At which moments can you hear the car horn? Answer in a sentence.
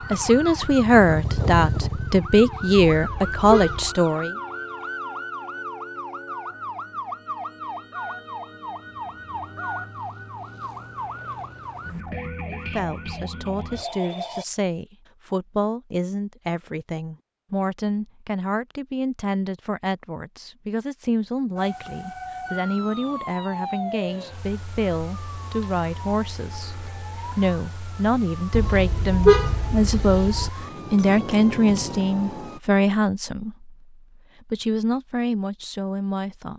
You can hear the car horn from 2.8 to 4.0 s and from 28.5 to 30.5 s.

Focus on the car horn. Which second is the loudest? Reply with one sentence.
The loudest moment of the car horn is at 29 seconds.